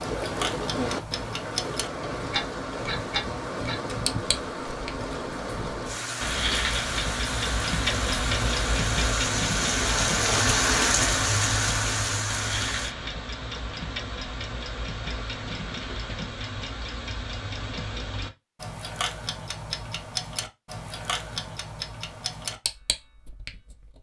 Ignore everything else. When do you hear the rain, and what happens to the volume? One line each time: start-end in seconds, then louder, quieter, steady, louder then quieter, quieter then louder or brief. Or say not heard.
0.0-12.9 louder.